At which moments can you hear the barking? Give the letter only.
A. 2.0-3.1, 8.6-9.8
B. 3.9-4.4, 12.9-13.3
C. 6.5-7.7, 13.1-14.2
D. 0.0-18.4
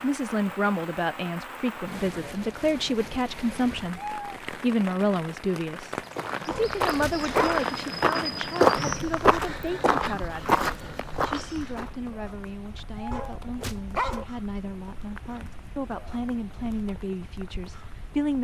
C.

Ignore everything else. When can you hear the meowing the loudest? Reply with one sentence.
The loudest moment of the meowing is at 4 seconds.